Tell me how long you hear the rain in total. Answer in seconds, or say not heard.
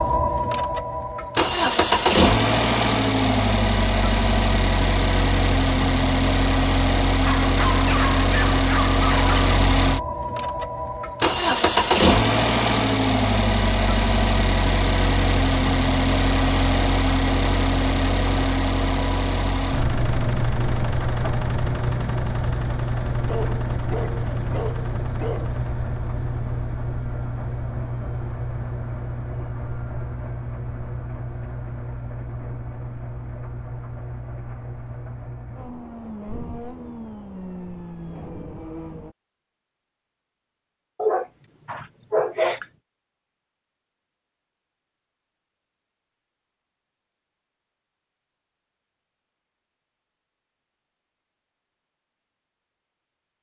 not heard.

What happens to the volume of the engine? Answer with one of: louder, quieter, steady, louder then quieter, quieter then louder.
quieter.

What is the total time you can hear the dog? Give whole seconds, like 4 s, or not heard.
6 s.